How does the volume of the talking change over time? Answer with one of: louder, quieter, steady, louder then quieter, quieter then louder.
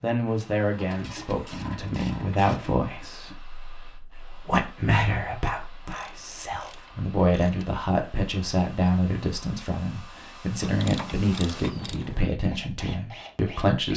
steady.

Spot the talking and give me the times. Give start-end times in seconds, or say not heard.
0.0-13.9.